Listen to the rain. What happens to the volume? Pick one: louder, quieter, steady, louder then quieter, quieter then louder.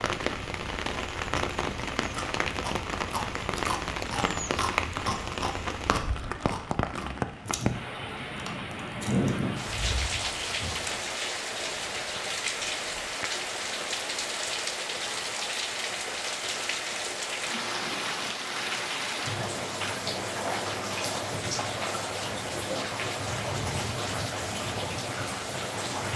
steady.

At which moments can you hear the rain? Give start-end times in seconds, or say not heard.
0.0-26.1.